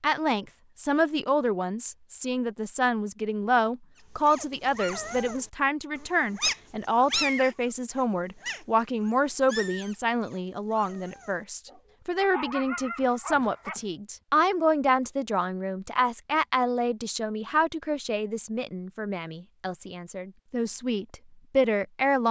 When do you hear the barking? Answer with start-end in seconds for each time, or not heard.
4.2-13.8.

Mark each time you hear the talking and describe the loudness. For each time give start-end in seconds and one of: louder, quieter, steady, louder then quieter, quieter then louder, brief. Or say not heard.
0.0-22.2 steady.